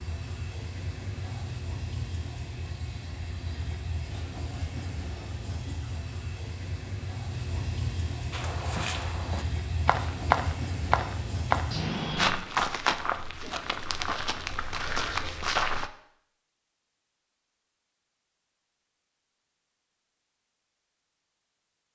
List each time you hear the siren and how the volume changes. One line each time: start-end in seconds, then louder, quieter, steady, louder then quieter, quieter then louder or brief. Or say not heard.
not heard.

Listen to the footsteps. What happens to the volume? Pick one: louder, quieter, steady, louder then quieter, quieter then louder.
louder then quieter.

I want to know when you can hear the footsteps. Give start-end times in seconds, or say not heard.
8.3-15.9.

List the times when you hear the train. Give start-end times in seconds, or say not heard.
0.0-12.4.